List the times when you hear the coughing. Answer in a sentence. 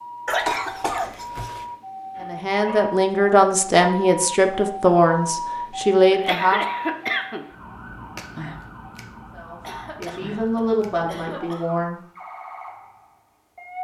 The coughing can be heard from 0.2 to 1.6 s, from 6.1 to 7.5 s and from 9.6 to 11.8 s.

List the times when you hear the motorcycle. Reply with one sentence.
The motorcycle can't be heard in this clip.